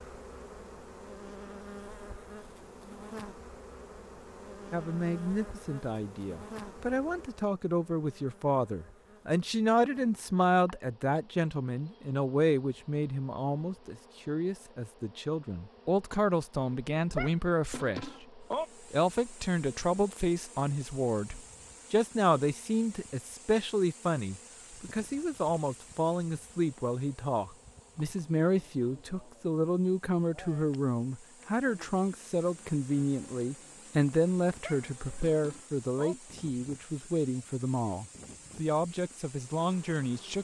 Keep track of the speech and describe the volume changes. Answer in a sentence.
The volume of the speech stays about the same.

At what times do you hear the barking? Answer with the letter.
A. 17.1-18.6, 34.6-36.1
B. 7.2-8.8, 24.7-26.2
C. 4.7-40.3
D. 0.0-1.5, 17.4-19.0
A.